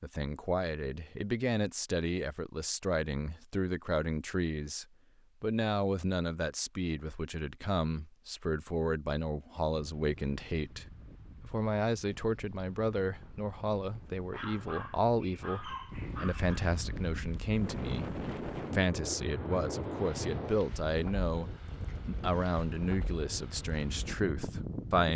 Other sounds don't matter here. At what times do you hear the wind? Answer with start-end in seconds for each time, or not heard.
9.7-25.1.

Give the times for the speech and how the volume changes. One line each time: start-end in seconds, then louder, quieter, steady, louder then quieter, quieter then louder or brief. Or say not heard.
0.0-25.1 steady.